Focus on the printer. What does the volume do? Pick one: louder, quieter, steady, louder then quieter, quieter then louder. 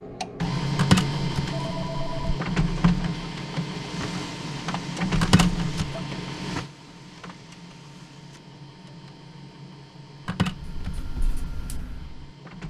quieter.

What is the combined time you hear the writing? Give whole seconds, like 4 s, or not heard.
2 s.